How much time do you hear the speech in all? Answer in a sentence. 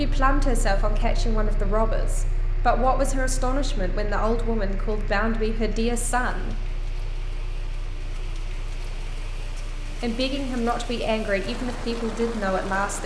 You can hear the speech for 10 seconds altogether.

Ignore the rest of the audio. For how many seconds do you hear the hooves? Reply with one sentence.
You can't hear the hooves here.